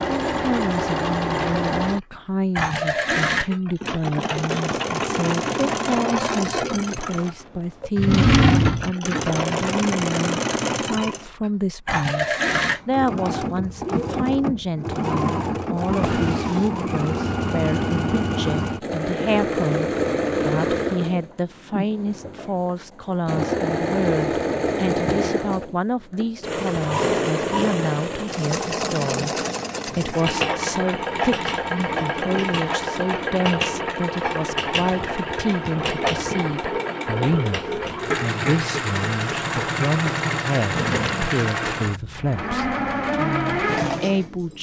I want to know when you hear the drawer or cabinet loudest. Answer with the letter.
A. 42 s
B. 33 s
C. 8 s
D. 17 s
C.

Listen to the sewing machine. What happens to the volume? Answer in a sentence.
The loudness of the sewing machine stays about the same.